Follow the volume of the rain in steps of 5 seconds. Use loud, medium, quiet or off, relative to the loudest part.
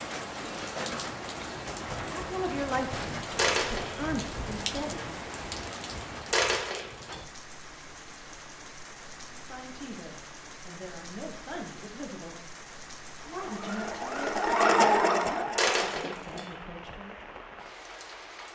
loud, medium, medium, medium.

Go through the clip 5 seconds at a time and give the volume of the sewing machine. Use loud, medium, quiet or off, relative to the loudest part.
off, off, loud, medium.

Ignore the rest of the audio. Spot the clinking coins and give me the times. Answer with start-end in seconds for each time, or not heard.
3.4-4.0, 6.3-7.2, 15.6-16.4.